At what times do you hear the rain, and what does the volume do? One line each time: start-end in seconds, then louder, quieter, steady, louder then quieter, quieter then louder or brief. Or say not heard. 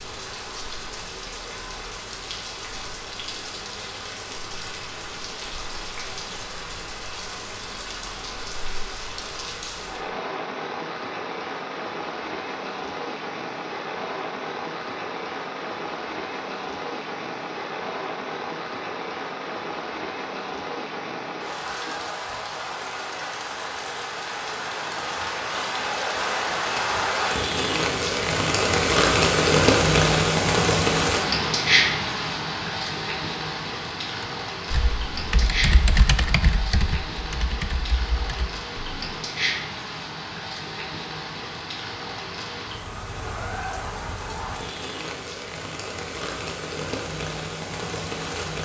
0.0-48.5 louder then quieter.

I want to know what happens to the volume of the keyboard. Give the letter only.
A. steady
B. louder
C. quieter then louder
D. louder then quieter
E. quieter
D.